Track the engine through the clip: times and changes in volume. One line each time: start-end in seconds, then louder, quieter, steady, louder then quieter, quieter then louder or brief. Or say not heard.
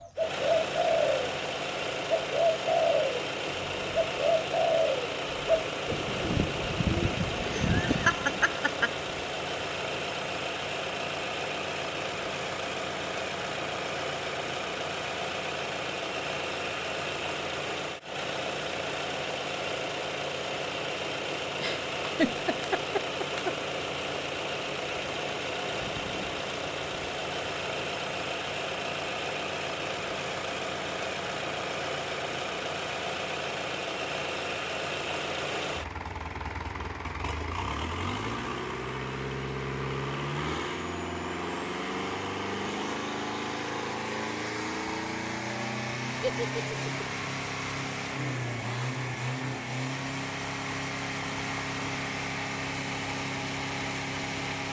0.0-54.6 steady.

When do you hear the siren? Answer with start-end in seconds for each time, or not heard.
not heard.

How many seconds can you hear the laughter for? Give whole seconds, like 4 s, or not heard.
4 s.